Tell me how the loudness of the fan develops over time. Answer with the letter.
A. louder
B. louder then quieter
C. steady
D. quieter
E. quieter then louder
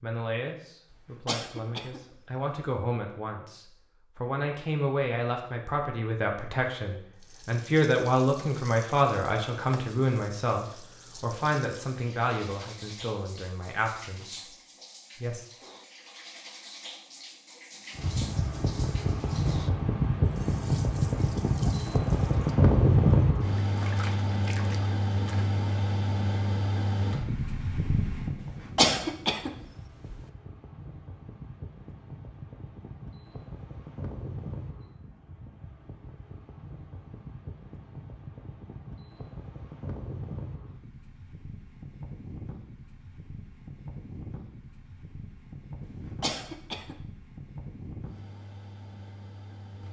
D.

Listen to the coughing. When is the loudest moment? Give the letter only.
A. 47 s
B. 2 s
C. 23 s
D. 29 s
D.